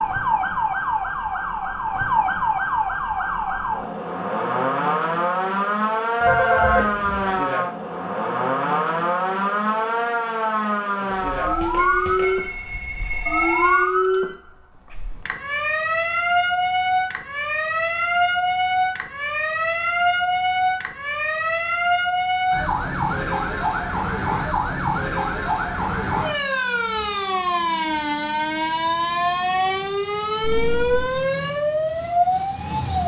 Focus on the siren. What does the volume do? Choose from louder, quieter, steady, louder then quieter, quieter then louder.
steady.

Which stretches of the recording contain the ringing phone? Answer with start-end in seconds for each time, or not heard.
6.2-7.4, 11.1-13.8, 30.4-31.1.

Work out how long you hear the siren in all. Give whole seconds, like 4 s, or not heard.
33 s.